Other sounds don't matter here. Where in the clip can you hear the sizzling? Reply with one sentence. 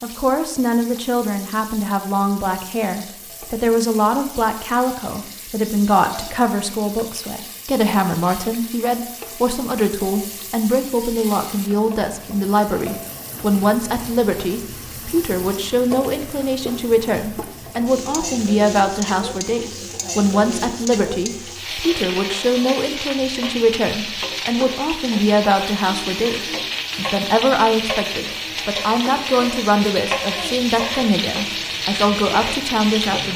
The sizzling can be heard from 0.0 to 33.3 s.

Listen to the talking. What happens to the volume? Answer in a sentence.
The volume of the talking stays about the same.